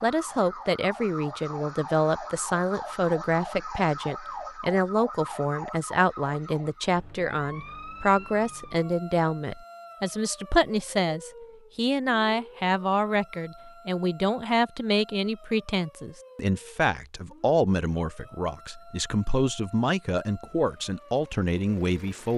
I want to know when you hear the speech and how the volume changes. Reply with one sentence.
You can hear the speech from 0.0 to 22.3 s, at a steady volume.